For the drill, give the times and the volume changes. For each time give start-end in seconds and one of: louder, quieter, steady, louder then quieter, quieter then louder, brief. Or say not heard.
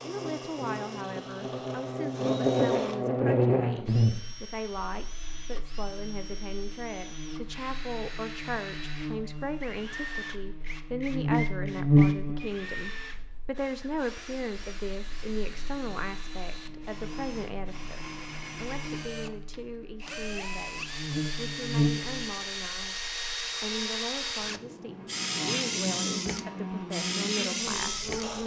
0.0-28.4 louder.